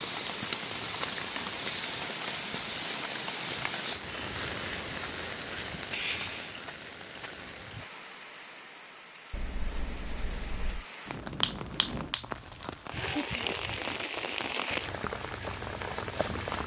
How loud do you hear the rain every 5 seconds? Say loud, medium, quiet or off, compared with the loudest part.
loud, medium, loud, loud.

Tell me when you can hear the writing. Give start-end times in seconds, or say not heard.
9.3-10.8.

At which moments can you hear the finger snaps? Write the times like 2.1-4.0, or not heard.
11.4-12.8.